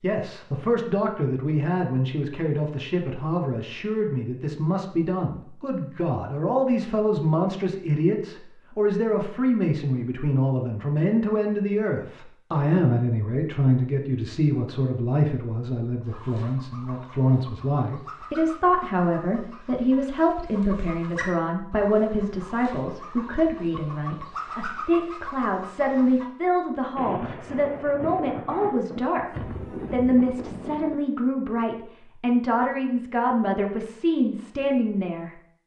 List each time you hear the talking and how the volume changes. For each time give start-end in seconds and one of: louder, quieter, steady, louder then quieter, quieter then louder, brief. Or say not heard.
0.0-35.3 steady.